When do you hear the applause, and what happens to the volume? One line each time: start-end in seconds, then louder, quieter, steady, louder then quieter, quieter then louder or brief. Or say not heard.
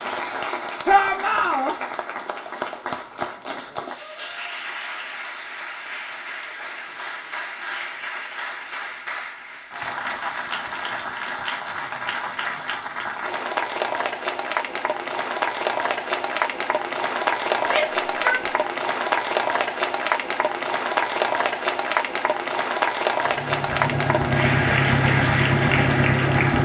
0.0-26.6 louder.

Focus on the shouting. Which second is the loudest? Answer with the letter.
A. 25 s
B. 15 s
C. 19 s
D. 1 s
D.